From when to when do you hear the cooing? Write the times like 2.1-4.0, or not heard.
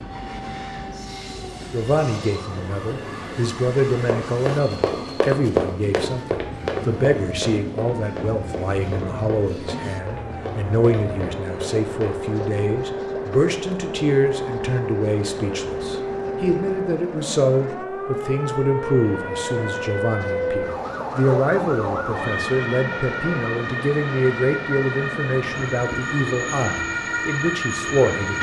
not heard.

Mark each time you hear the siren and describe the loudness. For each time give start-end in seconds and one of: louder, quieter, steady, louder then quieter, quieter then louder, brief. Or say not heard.
0.0-28.3 louder.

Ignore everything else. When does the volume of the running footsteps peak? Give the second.
5 s.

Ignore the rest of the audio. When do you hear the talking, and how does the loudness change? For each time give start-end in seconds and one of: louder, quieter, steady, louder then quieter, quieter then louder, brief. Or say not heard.
1.7-28.3 steady.